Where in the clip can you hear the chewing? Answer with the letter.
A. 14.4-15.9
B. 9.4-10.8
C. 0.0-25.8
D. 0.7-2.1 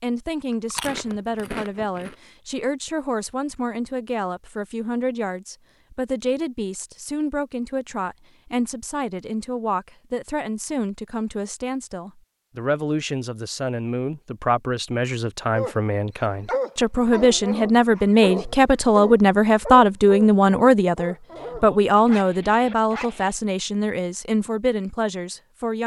D.